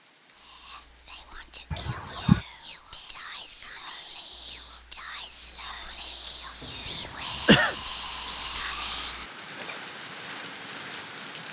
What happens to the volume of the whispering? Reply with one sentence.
The loudness of the whispering goes up.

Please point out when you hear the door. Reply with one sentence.
You can't hear the door here.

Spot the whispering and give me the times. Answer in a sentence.
The whispering can be heard from 0.3 to 9.9 s.